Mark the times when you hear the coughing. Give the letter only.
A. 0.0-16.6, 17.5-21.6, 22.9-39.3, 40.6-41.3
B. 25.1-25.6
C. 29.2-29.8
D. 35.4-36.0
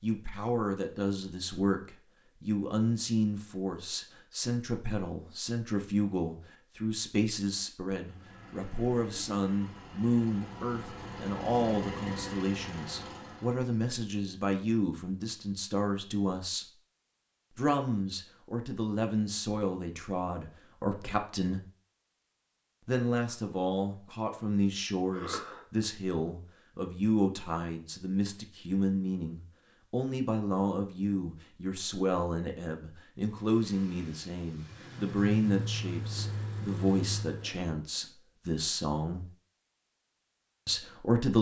B.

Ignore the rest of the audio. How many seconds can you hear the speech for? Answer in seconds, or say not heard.
38 s.